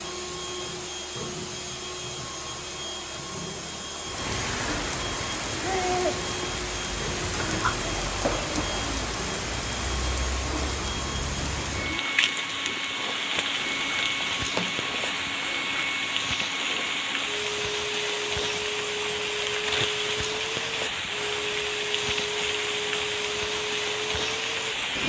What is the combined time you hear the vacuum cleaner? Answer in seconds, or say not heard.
25 s.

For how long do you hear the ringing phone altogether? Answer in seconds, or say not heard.
2 s.